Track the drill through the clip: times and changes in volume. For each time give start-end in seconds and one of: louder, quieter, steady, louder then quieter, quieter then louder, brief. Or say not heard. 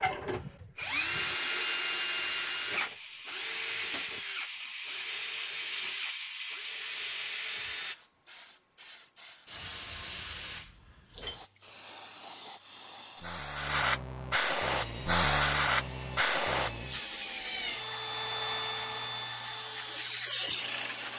0.0-8.0 quieter
14.7-21.1 louder then quieter.